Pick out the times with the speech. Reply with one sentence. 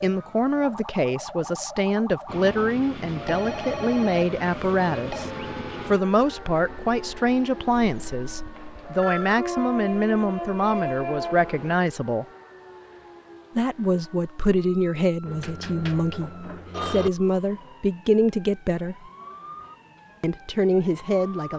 The speech can be heard from 0.0 to 12.2 s, from 13.6 to 18.9 s and from 20.2 to 21.5 s.